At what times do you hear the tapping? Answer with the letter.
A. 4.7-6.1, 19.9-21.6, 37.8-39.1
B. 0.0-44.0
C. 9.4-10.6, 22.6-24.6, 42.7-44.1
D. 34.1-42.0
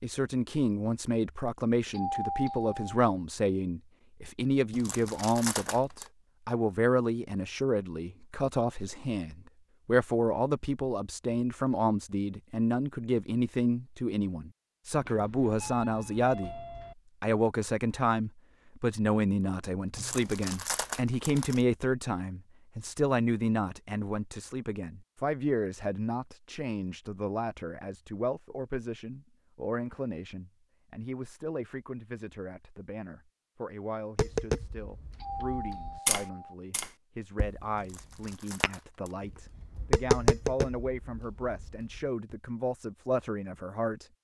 D.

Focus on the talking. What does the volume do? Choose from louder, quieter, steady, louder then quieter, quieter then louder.
quieter.